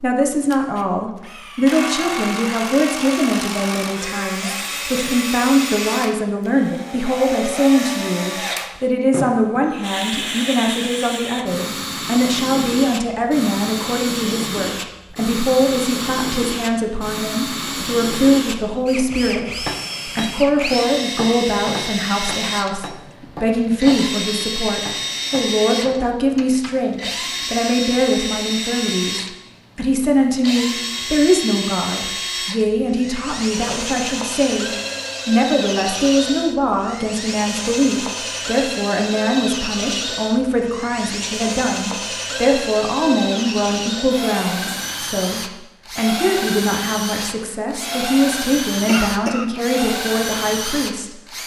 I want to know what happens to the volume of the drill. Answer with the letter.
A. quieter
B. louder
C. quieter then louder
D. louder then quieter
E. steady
E.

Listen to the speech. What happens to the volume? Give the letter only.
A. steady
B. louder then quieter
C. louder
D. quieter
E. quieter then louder
A.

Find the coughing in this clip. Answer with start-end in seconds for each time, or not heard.
48.9-49.5.